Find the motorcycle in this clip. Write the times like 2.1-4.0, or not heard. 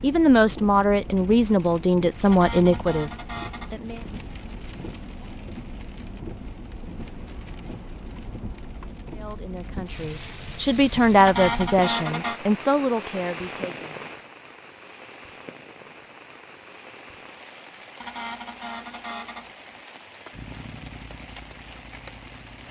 20.3-22.6.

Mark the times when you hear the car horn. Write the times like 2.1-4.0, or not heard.
2.2-3.8, 11.2-12.4, 18.0-19.6.